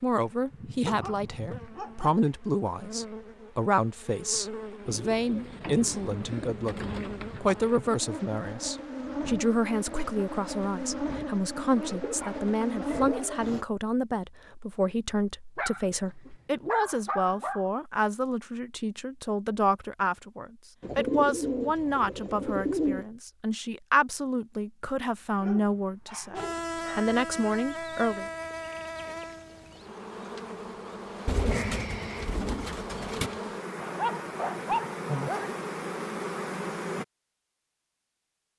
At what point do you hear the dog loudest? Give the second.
35 s.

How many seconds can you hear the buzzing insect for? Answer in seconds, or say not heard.
24 s.